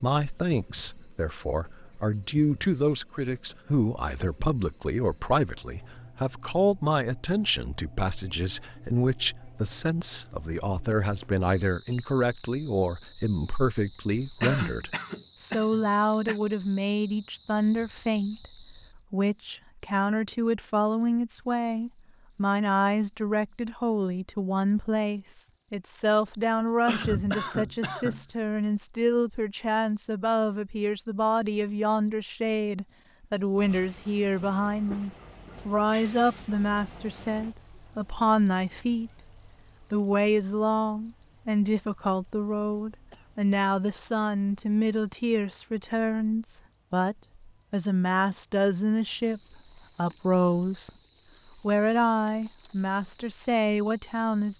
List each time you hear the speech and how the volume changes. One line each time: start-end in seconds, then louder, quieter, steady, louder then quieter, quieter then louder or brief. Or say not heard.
0.0-39.1 steady
39.9-50.9 steady
51.6-54.5 brief.